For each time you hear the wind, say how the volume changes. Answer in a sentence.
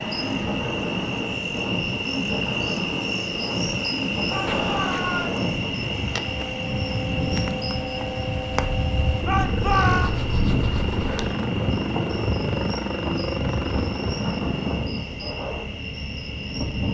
The wind can be heard from 0.1 to 16.8 s, at a steady volume.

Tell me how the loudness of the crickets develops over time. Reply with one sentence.
The loudness of the crickets goes down.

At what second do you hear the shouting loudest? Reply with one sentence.
The volume of the shouting peaks at 10 seconds.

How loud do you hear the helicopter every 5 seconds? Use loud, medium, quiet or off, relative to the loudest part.
medium, loud, loud, off.